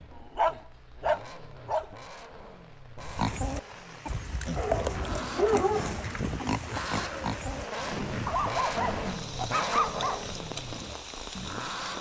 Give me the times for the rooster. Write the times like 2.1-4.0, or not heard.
not heard.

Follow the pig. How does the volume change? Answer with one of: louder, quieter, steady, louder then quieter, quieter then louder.
quieter.